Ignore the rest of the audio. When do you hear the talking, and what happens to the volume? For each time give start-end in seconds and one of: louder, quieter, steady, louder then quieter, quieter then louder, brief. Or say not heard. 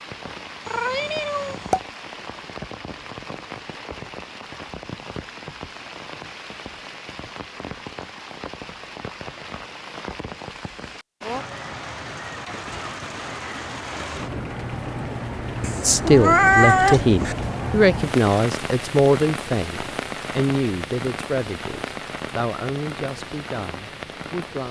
15.8-24.6 quieter.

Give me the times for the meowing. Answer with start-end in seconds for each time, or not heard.
0.7-1.8, 15.6-17.4.